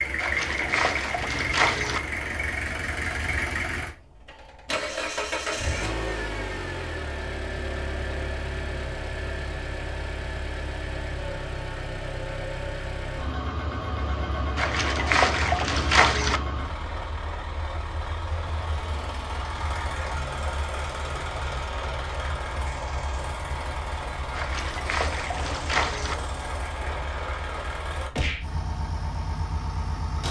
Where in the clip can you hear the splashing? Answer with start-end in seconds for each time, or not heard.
0.1-2.0, 14.6-16.4, 24.4-26.1.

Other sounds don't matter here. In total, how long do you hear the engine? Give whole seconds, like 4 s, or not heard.
30 s.